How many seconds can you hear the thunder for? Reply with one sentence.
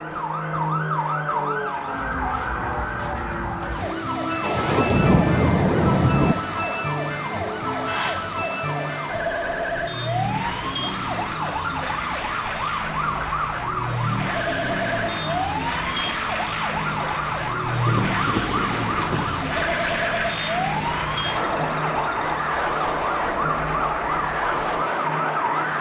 You can hear the thunder for 4 seconds altogether.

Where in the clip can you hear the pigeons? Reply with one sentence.
The pigeons can't be heard in this clip.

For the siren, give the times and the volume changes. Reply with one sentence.
The siren can be heard from 0.0 to 25.7 s, at a steady volume.